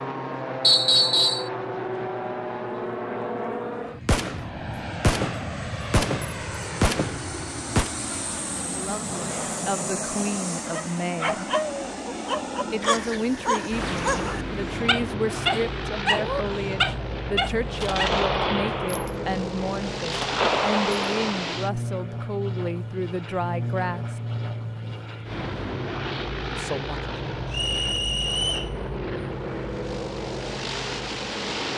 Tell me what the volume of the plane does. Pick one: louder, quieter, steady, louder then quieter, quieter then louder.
steady.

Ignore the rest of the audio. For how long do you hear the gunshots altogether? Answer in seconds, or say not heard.
7 s.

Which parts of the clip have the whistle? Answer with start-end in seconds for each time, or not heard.
0.6-1.5, 27.5-28.7.